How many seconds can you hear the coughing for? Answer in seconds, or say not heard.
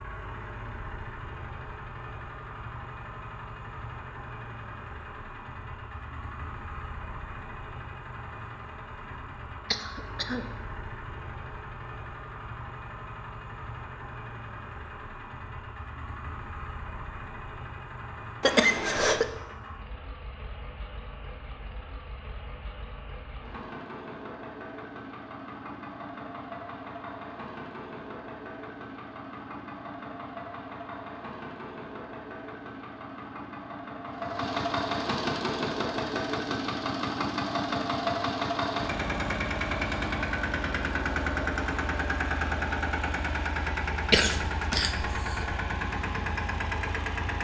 3 s.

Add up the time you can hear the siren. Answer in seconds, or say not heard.
not heard.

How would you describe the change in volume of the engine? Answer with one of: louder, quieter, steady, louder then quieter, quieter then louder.
louder.